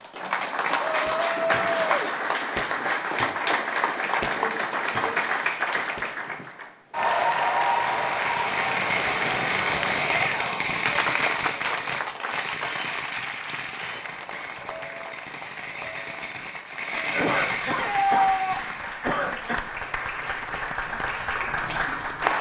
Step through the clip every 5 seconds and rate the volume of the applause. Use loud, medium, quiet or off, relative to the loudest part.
loud, loud, medium, medium, loud.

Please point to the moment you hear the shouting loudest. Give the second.
18 s.